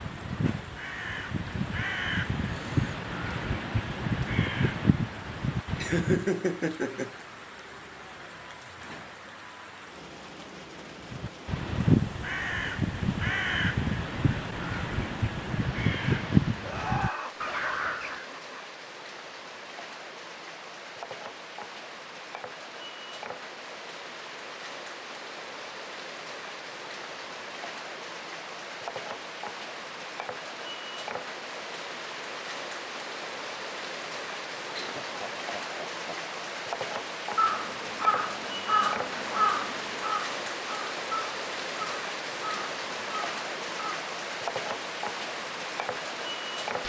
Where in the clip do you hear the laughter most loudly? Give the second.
6 s.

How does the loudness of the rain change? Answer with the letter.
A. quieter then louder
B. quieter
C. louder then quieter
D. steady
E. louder
E.